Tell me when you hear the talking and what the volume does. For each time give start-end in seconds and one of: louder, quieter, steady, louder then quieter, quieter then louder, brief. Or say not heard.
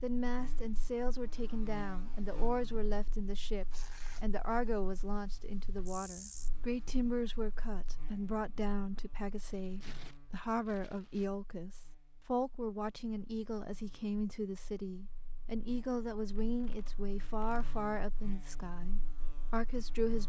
0.0-20.2 steady.